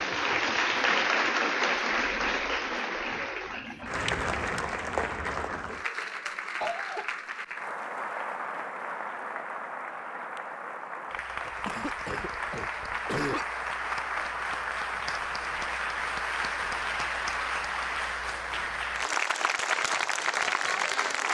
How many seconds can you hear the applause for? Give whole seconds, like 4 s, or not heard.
21 s.